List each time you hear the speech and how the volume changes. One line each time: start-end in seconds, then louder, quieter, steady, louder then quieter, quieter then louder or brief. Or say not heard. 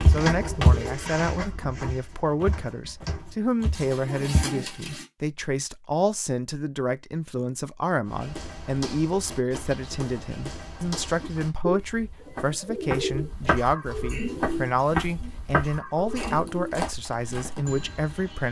0.1-18.4 steady.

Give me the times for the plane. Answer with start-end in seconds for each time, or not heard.
not heard.